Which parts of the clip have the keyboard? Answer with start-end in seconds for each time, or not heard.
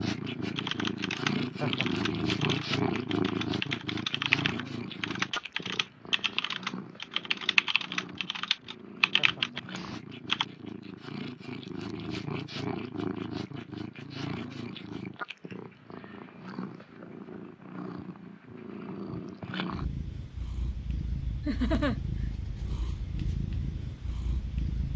0.6-10.4.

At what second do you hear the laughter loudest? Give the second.
22 s.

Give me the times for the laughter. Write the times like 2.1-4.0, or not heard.
1.4-2.0, 9.0-10.0, 21.4-22.0.